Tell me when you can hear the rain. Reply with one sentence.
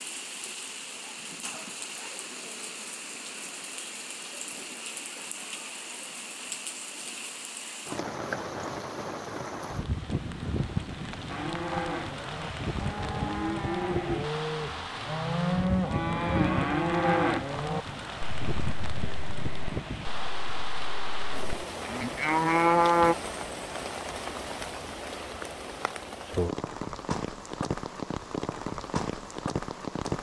The rain can be heard from 0.0 to 30.1 s.